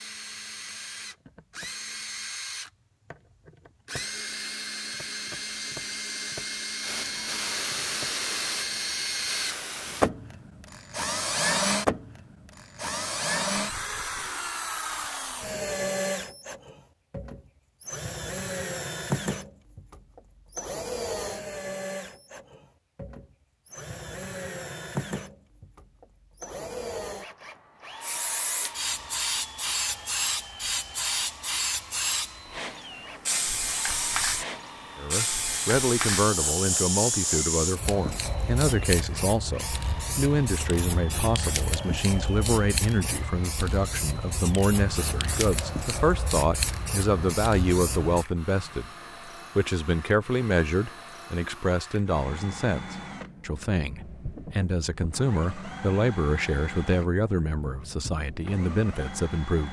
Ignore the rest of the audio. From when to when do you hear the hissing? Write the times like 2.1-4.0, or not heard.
6.8-10.1, 28.0-48.2.